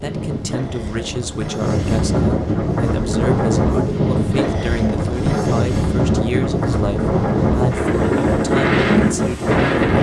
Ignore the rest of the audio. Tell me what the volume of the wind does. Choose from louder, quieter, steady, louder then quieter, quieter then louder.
louder.